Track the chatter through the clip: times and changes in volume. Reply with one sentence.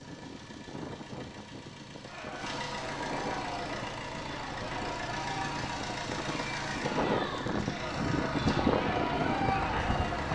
You can hear the chatter from 2.0 to 10.3 s, getting louder.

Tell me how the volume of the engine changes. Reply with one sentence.
The volume of the engine goes up.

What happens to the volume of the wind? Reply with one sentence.
The volume of the wind goes up.